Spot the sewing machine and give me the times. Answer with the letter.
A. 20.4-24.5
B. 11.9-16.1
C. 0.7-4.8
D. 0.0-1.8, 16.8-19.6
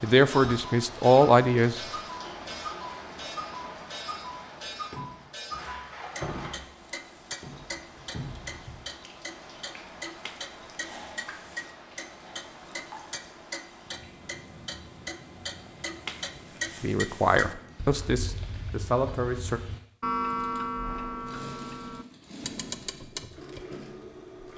A.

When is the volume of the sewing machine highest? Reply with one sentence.
The volume of the sewing machine peaks at 24 seconds.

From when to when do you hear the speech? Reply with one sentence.
You can hear the speech from 0.0 to 1.8 s and from 16.8 to 19.6 s.